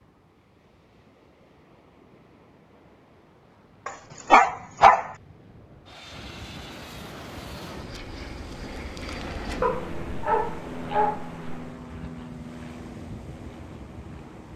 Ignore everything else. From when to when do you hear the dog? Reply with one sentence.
You can hear the dog from 3.9 to 5.2 s and from 9.6 to 11.7 s.